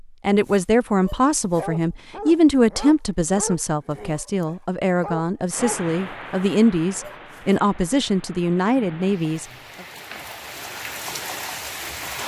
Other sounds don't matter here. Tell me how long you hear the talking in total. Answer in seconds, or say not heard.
9 s.